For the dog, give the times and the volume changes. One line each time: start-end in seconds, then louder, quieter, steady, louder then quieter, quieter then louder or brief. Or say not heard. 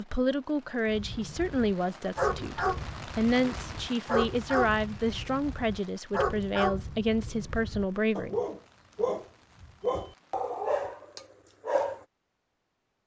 0.8-12.1 steady.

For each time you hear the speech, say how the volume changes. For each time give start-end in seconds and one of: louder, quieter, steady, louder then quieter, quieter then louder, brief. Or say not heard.
0.0-8.3 steady.